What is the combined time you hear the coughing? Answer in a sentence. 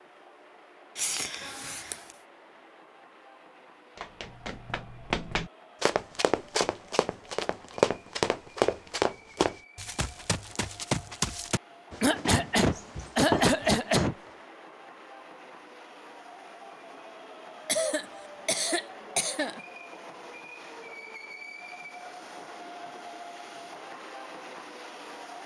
The coughing can be heard for 5 seconds in total.